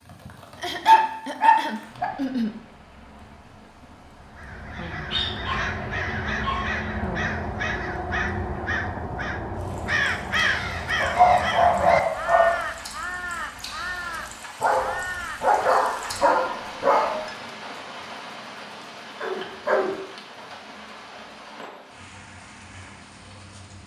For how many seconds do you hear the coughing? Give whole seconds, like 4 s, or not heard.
2 s.